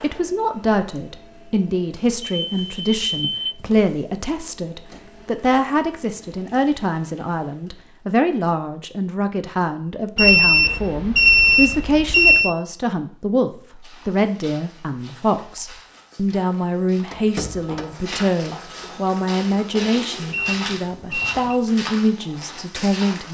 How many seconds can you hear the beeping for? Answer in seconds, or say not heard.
5 s.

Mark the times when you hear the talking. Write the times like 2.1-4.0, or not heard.
0.0-23.2.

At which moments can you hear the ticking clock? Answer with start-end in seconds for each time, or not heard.
not heard.